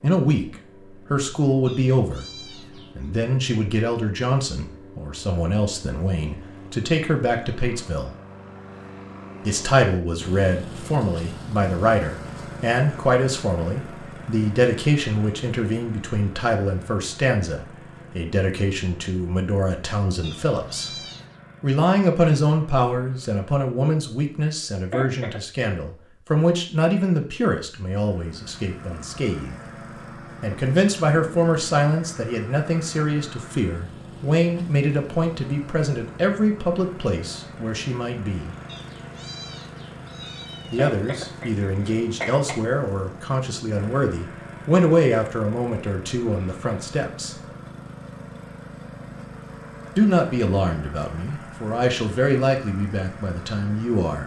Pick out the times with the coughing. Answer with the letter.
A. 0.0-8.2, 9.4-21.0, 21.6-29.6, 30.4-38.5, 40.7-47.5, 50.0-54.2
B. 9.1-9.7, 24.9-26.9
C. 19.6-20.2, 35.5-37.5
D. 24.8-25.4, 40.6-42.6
D.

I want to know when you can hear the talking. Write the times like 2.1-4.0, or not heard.
0.0-8.2, 9.4-21.0, 21.6-29.6, 30.4-38.5, 40.7-47.5, 50.0-54.2.